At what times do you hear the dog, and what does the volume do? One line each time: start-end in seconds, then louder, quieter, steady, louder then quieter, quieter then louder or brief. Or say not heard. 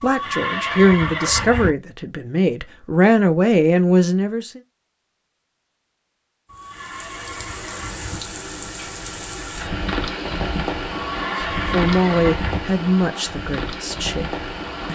not heard.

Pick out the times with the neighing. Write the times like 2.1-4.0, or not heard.
0.0-1.7, 6.5-8.2, 10.9-12.6.